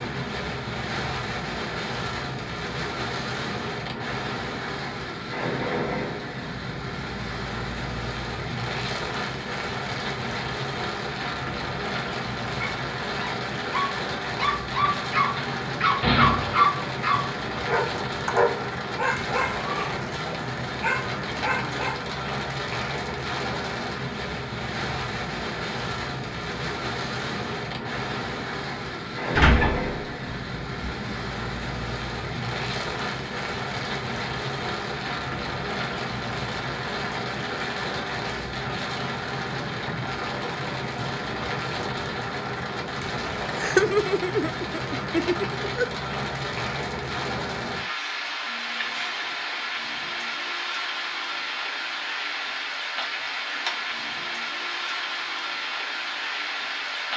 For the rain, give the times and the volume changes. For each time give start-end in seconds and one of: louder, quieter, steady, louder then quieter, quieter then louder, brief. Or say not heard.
0.0-57.1 steady.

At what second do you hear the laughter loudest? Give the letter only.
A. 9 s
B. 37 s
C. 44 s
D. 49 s
C.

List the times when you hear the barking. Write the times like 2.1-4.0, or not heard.
12.6-22.1.